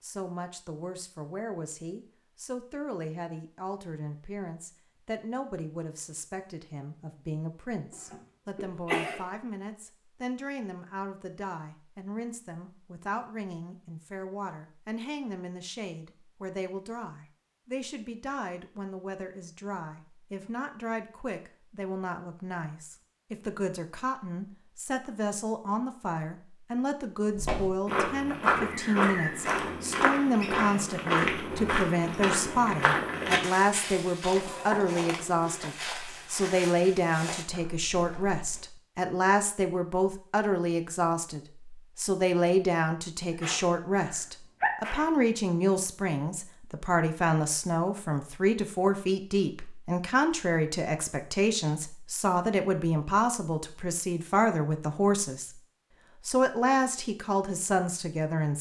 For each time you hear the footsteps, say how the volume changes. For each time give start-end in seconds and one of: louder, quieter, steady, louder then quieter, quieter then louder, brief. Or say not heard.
27.4-38.6 quieter.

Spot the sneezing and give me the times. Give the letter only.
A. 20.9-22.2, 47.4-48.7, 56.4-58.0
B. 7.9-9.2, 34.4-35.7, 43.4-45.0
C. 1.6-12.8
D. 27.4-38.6
B.